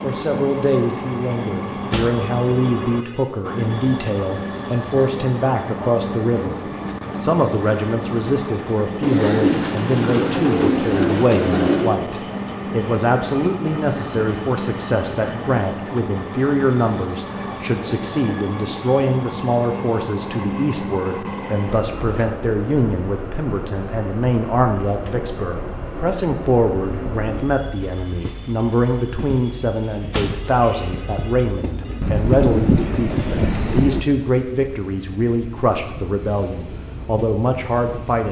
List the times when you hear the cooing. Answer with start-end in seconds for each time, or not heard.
9.0-12.0, 32.0-34.0.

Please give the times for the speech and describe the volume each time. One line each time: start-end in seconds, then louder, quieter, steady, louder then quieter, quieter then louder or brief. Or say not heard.
0.0-6.6 steady
7.2-38.2 steady.